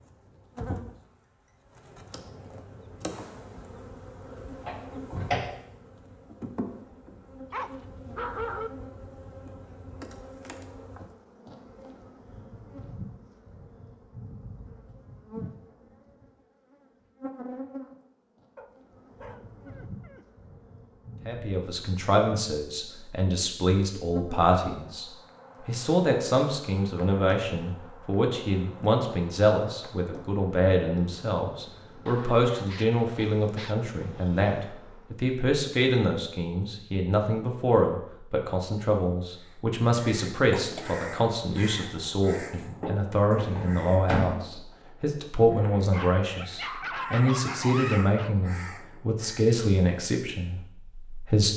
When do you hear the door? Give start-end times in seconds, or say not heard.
4.5-5.4, 43.4-44.4.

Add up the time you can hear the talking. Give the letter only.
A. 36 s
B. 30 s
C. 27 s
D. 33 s
B.